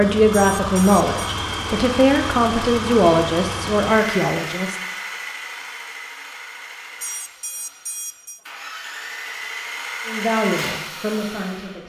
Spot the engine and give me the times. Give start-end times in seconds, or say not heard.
0.0-11.8.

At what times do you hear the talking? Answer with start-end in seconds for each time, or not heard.
0.0-4.8, 10.1-11.8.